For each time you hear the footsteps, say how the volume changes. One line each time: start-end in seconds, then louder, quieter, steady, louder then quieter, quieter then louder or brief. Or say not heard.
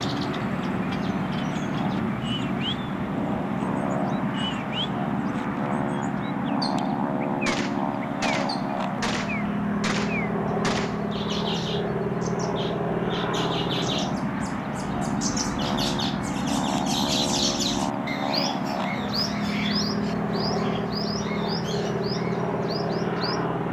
not heard.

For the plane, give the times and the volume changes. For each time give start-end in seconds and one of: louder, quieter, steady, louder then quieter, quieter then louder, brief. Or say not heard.
0.0-23.6 steady.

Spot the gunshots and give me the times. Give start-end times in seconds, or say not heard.
7.5-11.1.